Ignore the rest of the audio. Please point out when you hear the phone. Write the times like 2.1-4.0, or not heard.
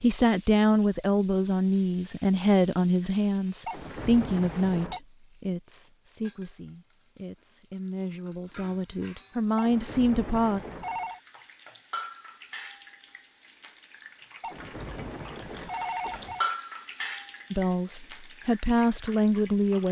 3.6-5.0, 9.6-11.2, 14.4-16.5.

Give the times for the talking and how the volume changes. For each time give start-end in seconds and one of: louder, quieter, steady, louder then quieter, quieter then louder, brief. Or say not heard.
0.0-10.6 quieter then louder
17.5-19.8 brief.